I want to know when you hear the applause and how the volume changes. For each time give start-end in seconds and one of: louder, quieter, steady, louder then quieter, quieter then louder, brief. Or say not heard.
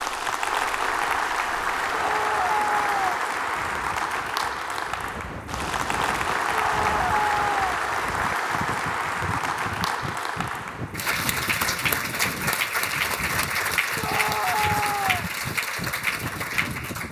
0.0-17.0 steady.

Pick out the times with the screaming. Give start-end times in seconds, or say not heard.
1.9-3.1, 6.5-7.7, 13.9-15.2.